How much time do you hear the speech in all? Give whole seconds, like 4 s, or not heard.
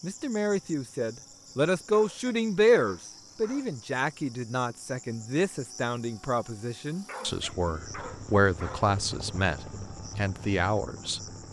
11 s.